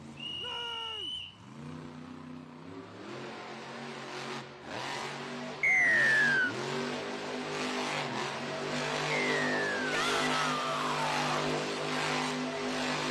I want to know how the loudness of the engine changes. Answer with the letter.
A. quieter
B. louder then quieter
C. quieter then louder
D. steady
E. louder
E.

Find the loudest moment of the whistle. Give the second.
6 s.